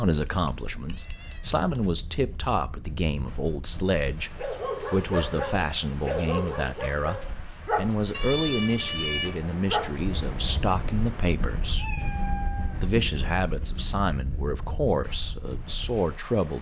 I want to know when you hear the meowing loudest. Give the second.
9 s.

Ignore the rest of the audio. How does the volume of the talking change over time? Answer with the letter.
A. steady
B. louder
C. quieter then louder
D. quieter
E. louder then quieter
A.